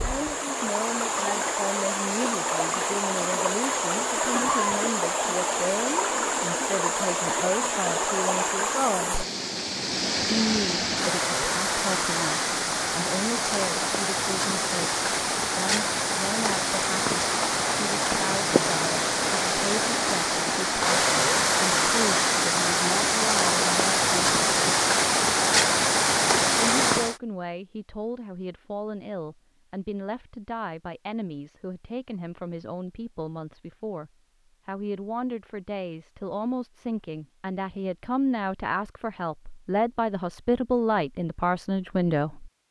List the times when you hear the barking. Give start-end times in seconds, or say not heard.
not heard.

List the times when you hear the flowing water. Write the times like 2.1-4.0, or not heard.
0.0-27.1.